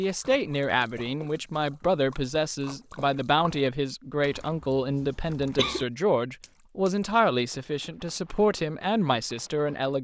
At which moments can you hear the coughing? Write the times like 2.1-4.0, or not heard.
4.2-5.8.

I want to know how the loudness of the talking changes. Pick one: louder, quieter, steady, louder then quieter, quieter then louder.
steady.